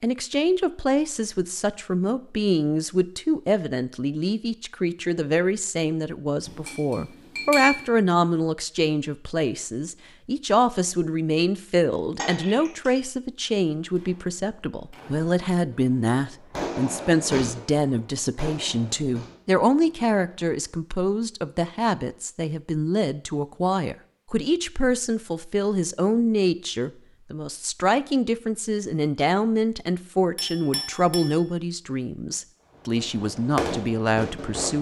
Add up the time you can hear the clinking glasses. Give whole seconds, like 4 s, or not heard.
3 s.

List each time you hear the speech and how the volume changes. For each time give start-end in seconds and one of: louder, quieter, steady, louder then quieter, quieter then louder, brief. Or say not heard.
0.0-34.7 steady.